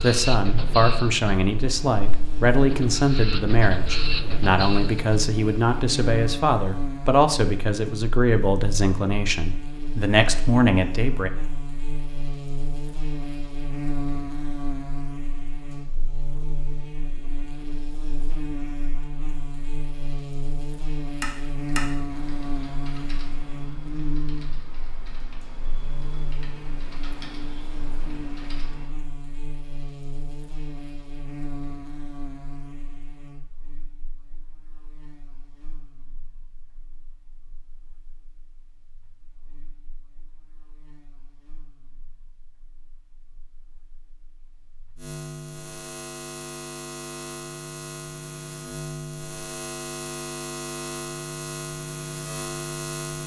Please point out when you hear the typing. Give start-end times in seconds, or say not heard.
21.2-28.9.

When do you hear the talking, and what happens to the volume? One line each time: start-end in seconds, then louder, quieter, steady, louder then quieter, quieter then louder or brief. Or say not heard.
0.0-11.3 steady.